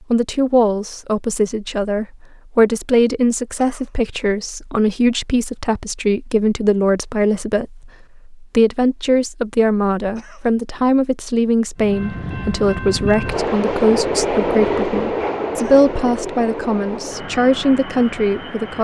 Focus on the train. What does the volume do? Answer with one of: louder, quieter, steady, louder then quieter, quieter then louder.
louder then quieter.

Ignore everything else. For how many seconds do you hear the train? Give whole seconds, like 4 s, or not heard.
7 s.